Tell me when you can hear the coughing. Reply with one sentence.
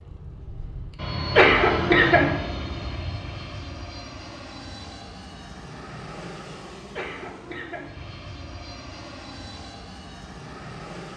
You can hear the coughing from 1.4 to 2.4 s and from 7.0 to 7.9 s.